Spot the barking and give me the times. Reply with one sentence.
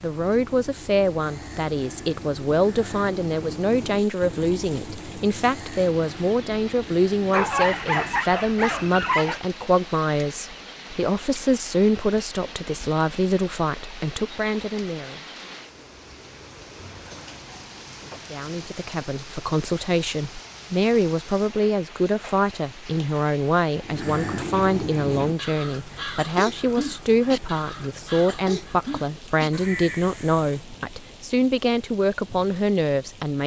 The barking can be heard from 7.3 to 9.4 s and from 16.9 to 18.4 s.